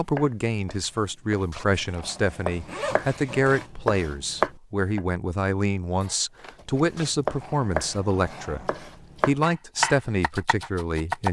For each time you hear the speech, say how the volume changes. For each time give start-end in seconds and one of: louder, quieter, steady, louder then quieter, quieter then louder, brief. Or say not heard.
0.0-11.2 steady.